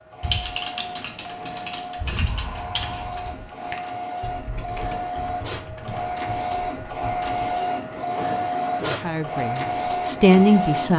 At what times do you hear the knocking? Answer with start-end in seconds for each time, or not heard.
not heard.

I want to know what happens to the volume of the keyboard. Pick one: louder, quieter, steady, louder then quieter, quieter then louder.
quieter.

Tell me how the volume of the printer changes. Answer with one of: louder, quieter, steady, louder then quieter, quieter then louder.
louder.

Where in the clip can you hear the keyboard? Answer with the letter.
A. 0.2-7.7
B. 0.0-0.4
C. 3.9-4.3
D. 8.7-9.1
A.